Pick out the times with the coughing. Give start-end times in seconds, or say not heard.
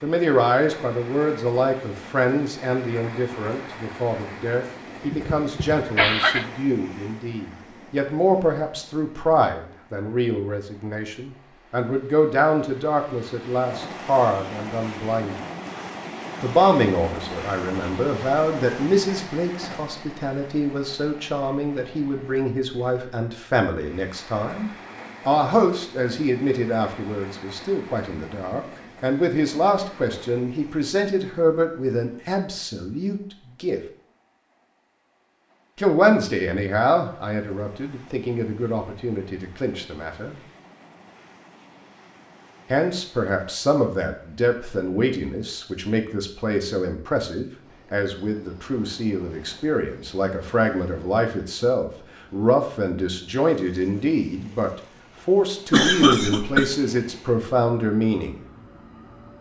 5.0-6.5, 55.7-56.7.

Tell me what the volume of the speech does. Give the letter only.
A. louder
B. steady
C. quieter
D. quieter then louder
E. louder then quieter
B.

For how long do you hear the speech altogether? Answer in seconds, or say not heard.
53 s.